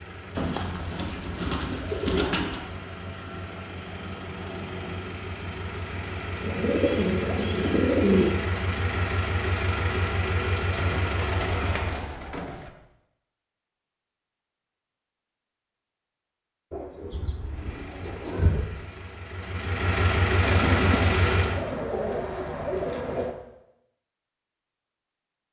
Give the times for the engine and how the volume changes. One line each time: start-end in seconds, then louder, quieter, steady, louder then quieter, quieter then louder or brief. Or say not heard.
0.0-12.0 louder
17.4-21.6 louder.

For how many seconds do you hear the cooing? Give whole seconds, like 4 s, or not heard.
11 s.